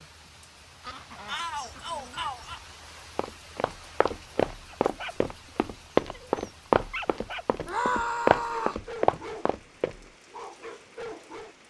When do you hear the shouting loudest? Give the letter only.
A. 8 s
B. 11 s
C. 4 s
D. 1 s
A.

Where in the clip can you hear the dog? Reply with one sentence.
The dog can be heard from 4.7 to 7.5 s, from 8.3 to 9.6 s and from 10.2 to 11.6 s.